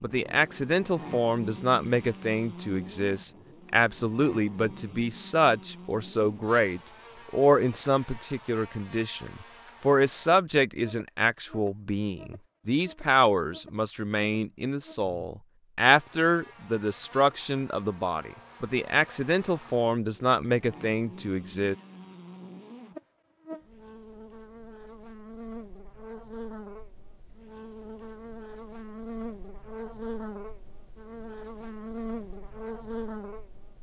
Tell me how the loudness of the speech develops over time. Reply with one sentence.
The volume of the speech stays about the same.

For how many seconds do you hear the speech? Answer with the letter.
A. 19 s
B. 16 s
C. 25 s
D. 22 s
D.